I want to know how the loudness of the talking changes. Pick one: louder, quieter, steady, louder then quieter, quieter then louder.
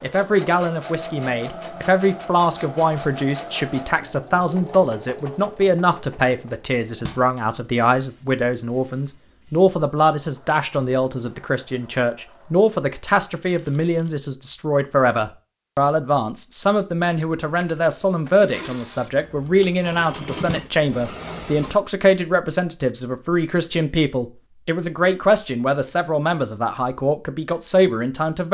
steady.